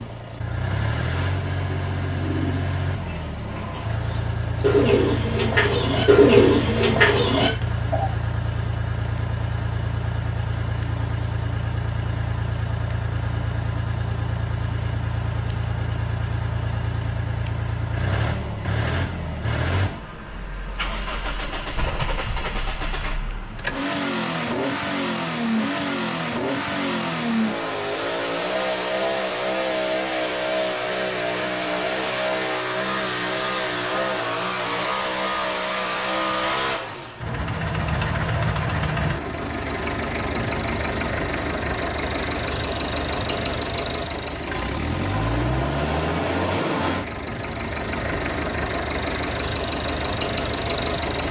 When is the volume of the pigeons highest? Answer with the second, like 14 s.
6 s.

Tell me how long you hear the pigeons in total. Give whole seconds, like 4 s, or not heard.
7 s.